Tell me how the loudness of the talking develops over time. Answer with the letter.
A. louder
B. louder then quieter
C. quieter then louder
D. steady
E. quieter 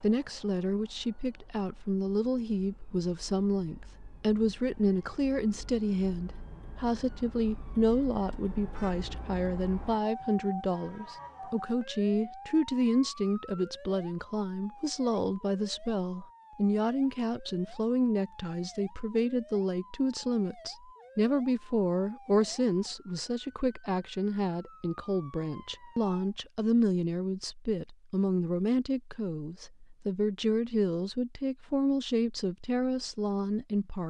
D.